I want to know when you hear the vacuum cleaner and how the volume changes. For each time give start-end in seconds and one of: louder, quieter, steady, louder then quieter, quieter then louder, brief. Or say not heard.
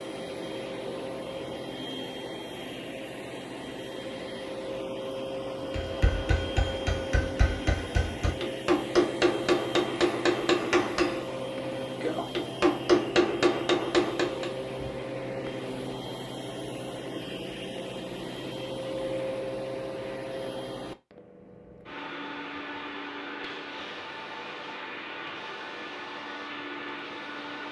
0.0-27.6 steady.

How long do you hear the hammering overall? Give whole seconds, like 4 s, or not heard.
9 s.